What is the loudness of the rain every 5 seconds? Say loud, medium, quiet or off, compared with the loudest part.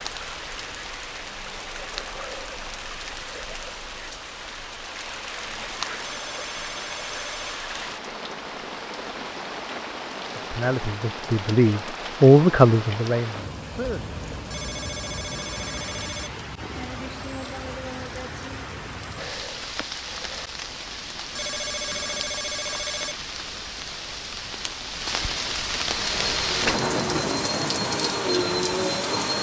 medium, medium, medium, medium, medium, loud.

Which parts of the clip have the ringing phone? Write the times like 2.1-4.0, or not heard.
6.0-7.6, 14.5-16.3, 21.4-23.1.